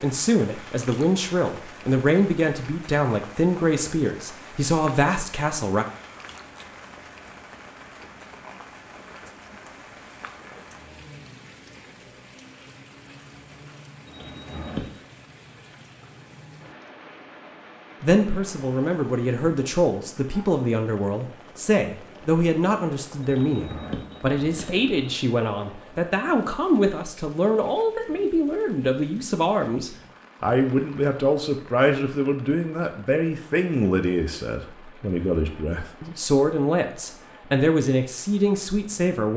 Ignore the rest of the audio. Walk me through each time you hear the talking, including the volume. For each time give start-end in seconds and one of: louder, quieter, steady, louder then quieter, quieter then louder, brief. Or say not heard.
0.0-5.8 steady
18.0-39.3 steady.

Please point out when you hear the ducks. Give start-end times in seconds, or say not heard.
not heard.